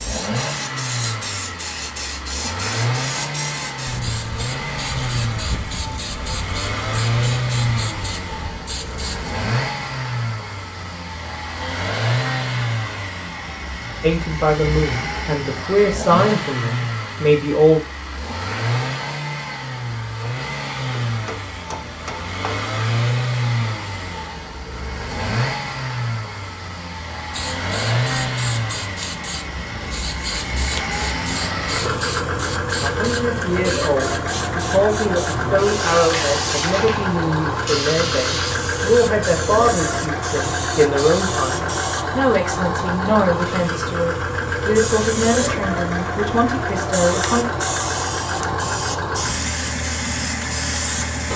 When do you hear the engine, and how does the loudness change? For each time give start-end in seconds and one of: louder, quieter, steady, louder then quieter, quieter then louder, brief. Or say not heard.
0.0-51.3 steady.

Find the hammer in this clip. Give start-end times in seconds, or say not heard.
20.9-22.7.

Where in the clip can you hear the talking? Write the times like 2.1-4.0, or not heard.
14.0-17.8, 32.8-47.5.